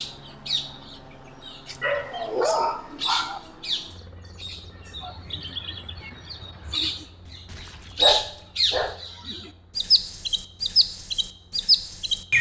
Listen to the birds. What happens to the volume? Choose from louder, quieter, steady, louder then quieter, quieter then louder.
louder.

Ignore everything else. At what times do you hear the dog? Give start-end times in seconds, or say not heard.
1.8-3.4, 7.2-8.9.